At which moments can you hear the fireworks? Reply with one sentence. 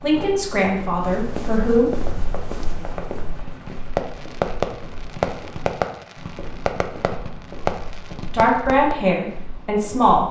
The fireworks can be heard from 1.9 to 8.9 s.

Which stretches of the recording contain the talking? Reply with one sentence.
You can hear the talking from 0.0 to 1.9 s and from 8.2 to 10.2 s.